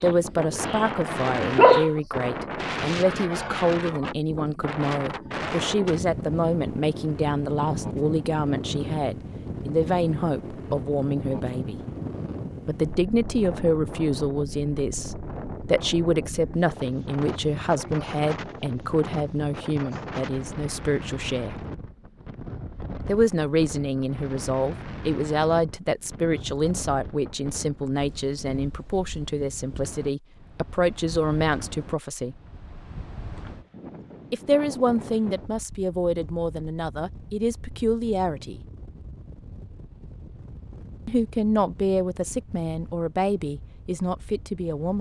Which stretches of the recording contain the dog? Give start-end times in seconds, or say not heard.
0.0-2.2.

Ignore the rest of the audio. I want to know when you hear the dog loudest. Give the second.
2 s.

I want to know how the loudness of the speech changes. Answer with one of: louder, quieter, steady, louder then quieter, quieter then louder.
steady.